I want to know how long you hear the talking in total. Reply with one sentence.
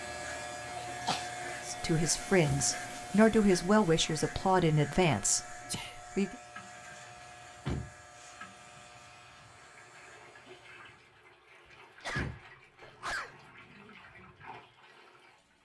The talking can be heard for 5 seconds in total.